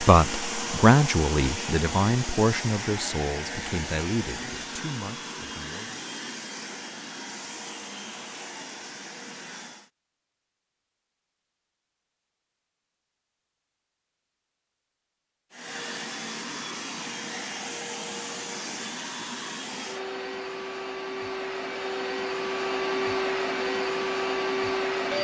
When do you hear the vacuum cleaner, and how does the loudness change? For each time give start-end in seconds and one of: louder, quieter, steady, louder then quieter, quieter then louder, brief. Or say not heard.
0.0-9.9 quieter
15.5-25.1 louder.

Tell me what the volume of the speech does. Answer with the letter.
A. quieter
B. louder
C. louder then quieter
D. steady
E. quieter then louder
A.